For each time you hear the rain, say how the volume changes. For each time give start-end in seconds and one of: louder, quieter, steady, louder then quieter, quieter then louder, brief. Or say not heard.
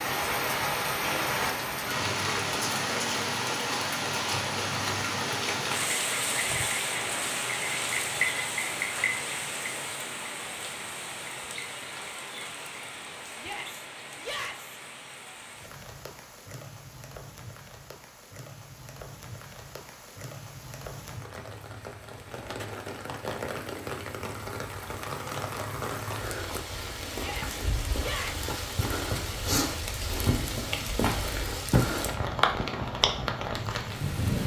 0.0-34.4 quieter then louder.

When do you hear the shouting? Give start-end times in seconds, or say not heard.
13.3-14.8, 27.1-28.4.